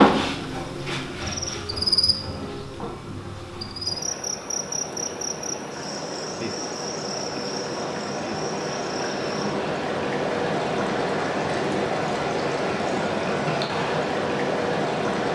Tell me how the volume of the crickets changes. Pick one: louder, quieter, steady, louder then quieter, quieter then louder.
quieter.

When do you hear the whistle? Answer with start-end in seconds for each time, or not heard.
not heard.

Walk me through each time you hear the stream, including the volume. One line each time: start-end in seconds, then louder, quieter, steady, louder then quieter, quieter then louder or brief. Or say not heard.
3.9-15.2 louder.